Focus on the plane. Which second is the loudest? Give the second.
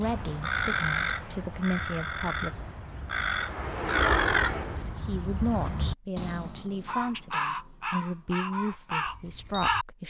4 s.